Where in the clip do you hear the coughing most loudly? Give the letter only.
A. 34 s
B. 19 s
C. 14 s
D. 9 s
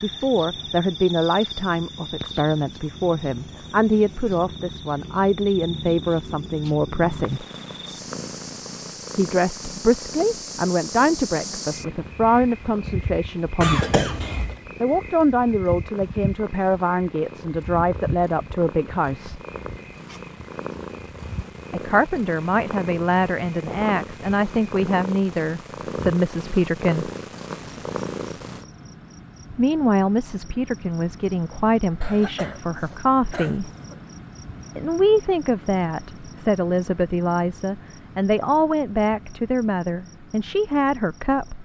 C.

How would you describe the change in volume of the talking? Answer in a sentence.
The volume of the talking stays about the same.